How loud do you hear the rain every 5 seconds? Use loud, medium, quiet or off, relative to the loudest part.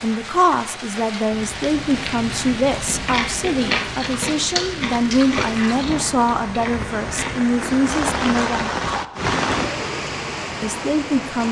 medium, loud, loud.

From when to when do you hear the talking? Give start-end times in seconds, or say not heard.
0.0-8.7, 10.6-11.4.